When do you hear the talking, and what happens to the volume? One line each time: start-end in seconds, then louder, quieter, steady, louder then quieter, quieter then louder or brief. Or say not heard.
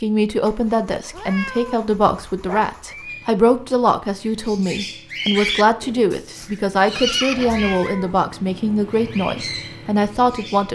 0.0-10.7 steady.